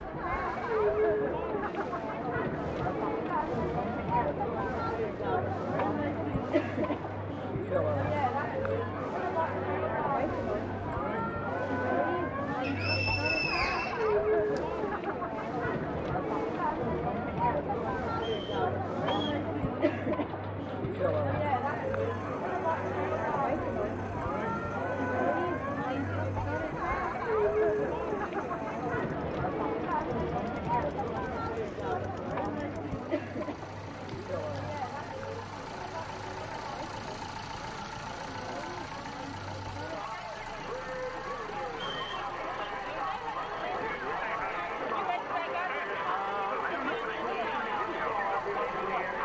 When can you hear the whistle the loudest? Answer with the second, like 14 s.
13 s.